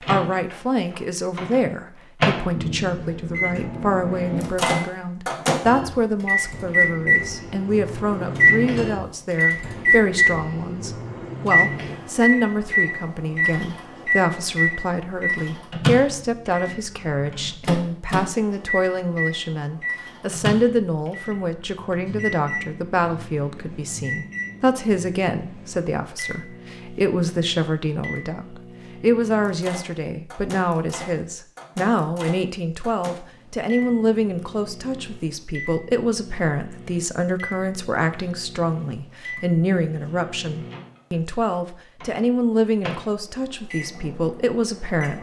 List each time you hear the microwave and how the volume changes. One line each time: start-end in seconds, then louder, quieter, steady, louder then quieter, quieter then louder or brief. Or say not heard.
0.0-45.1 quieter.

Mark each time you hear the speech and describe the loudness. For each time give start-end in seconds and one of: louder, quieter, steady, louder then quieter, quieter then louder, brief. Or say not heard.
0.1-45.1 steady.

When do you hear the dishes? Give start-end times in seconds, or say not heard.
not heard.